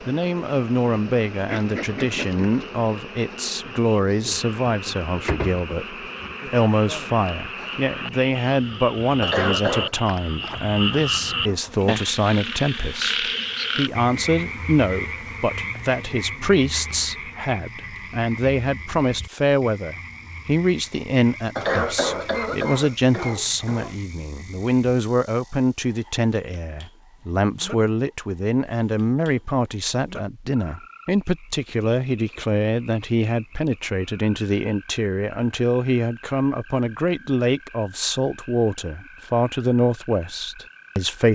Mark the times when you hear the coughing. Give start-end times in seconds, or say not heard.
9.2-9.9, 21.6-23.9.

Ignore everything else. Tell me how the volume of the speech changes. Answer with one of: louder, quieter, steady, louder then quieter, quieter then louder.
steady.